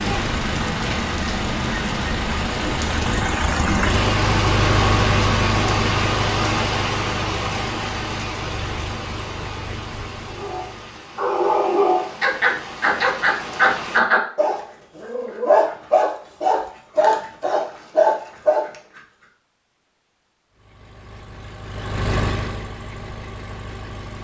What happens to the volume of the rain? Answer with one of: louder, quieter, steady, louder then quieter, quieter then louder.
quieter.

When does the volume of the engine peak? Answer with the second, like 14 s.
5 s.